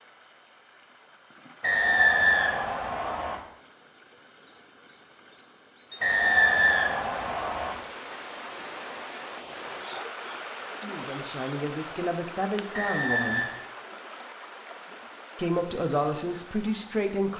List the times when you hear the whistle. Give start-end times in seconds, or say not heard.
1.6-3.4, 6.0-7.8, 12.7-13.6.